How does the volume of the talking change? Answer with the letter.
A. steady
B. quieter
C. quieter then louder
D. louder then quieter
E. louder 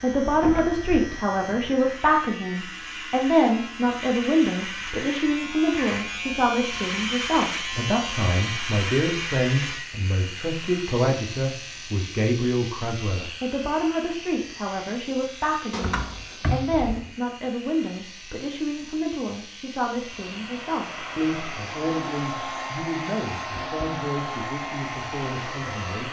B.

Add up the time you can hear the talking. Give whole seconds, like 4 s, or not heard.
26 s.